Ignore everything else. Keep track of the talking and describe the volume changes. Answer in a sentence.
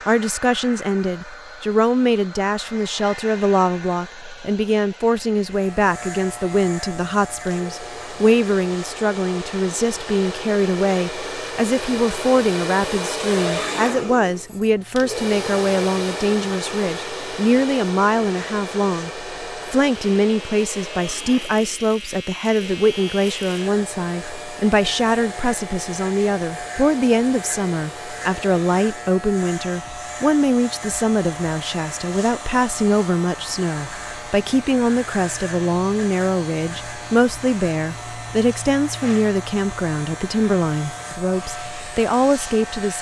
The volume of the talking stays about the same.